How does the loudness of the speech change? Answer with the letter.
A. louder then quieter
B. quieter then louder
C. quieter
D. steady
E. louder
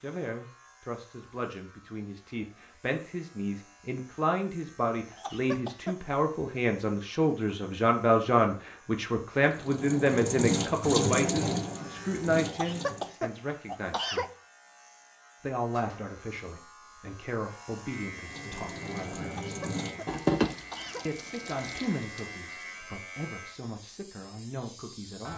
A.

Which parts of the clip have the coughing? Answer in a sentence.
You can hear the coughing from 5.1 to 6.0 s, from 12.4 to 14.3 s and from 19.2 to 21.1 s.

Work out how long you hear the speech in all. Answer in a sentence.
The speech can be heard for 23 seconds in total.